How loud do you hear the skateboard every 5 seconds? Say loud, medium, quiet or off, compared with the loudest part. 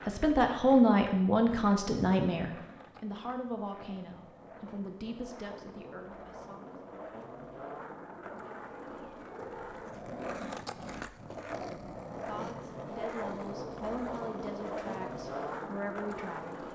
medium, medium, loud, loud.